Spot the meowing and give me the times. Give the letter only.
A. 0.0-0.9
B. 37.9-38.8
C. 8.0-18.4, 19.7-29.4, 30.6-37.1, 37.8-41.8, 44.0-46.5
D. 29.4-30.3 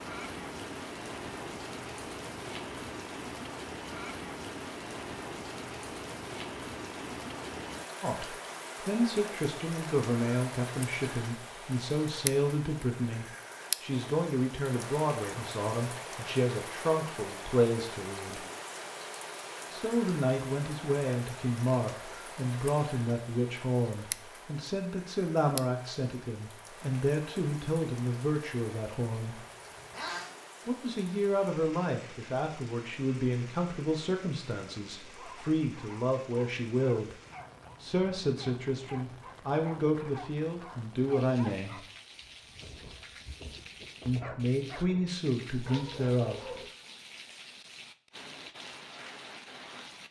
D.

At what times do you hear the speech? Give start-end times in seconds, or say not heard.
8.0-18.4, 19.7-29.4, 30.6-37.1, 37.8-41.8, 44.0-46.5.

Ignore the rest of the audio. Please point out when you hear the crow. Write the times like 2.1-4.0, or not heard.
not heard.